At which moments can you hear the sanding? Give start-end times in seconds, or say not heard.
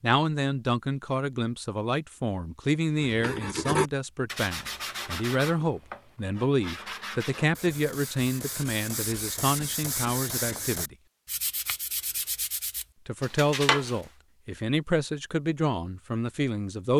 3.0-14.1.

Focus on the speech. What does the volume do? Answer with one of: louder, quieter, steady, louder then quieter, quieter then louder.
steady.